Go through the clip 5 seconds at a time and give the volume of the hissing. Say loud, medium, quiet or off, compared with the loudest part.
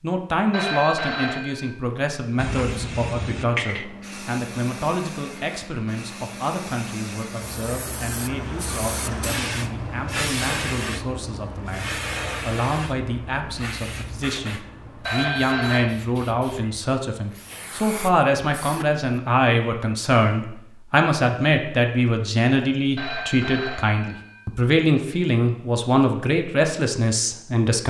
loud, loud, loud, medium, off, off.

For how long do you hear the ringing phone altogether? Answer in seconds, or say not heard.
4 s.